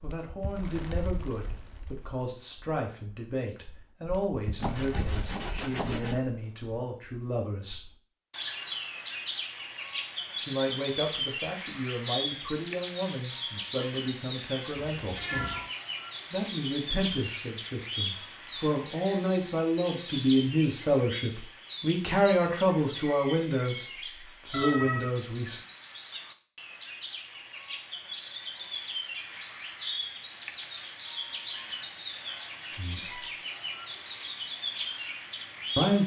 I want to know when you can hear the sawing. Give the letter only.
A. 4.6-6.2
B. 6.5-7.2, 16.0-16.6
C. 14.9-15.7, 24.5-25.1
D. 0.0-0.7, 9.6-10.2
A.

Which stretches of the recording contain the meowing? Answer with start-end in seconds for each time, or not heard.
14.9-15.7, 24.5-25.1.